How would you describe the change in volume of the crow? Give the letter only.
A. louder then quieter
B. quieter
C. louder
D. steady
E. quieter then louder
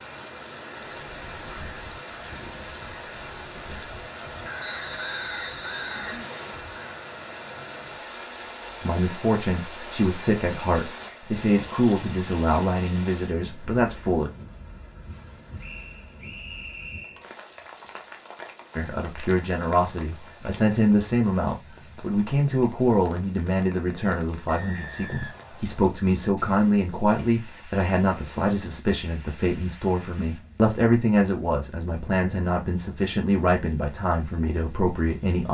C.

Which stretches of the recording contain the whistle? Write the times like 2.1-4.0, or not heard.
4.5-6.6, 15.6-17.2, 24.4-25.9.